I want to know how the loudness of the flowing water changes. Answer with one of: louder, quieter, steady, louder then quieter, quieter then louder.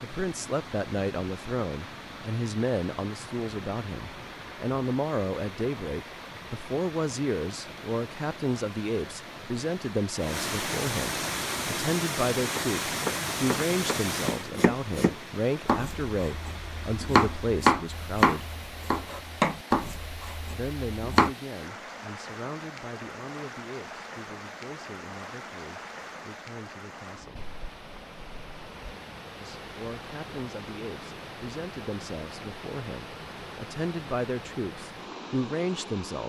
louder then quieter.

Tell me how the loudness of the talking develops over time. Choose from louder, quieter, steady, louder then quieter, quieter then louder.
quieter then louder.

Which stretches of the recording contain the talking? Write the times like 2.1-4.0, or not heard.
0.0-18.6, 20.6-27.4, 29.4-36.2.